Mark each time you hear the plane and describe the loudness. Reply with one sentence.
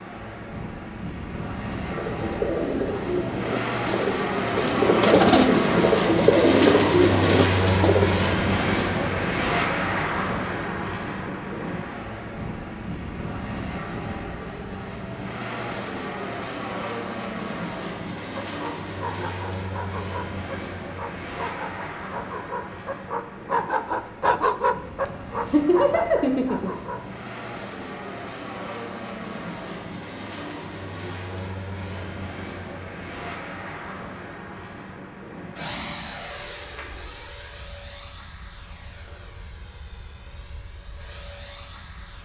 You can hear the plane from 0.0 to 42.2 s, getting quieter.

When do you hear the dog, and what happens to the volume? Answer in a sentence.
The dog can be heard from 18.6 to 27.1 s, getting louder then quieter.